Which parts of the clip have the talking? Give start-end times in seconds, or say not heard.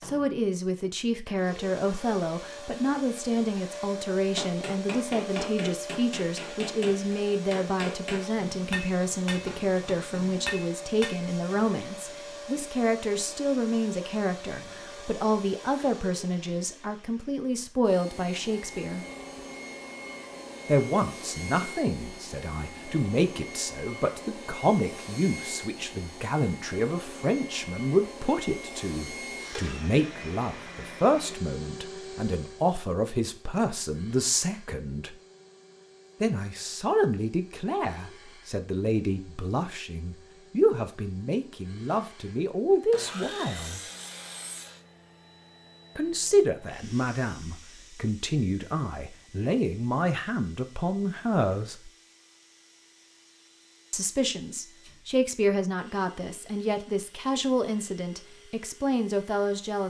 0.0-19.1, 20.6-35.1, 36.2-43.8, 46.0-51.9, 53.9-59.8.